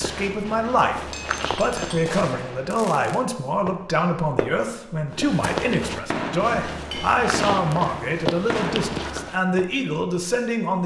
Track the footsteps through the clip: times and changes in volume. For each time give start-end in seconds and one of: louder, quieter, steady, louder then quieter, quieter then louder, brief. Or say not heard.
0.0-2.1 brief
5.1-9.3 quieter then louder.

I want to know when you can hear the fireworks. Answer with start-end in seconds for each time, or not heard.
2.0-4.7, 5.4-9.7.